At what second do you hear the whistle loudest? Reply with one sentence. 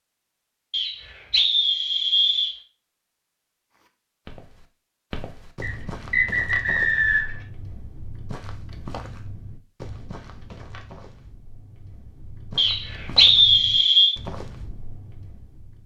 The loudest moment of the whistle is at 13 seconds.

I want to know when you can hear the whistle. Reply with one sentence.
You can hear the whistle from 0.7 to 2.5 s, from 5.6 to 7.3 s and from 12.6 to 14.2 s.